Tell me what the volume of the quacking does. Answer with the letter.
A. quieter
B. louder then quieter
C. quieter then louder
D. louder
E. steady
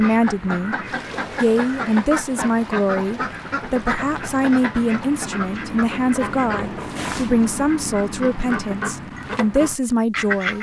E.